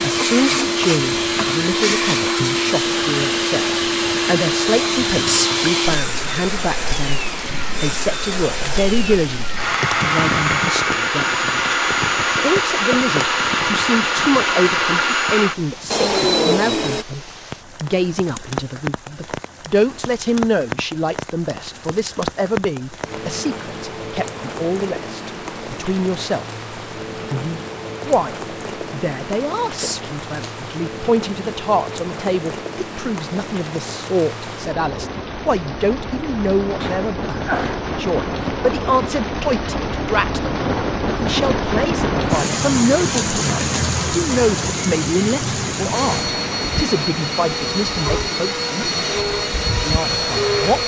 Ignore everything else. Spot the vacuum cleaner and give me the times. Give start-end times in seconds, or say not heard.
0.0-17.1, 45.9-50.8.